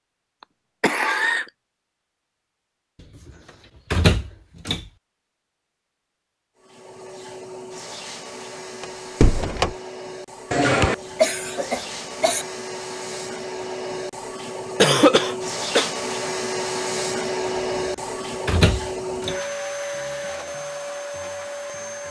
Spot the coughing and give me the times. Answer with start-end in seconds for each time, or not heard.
0.4-1.5, 10.5-12.4, 14.8-15.9.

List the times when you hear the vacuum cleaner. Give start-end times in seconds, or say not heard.
6.5-22.0.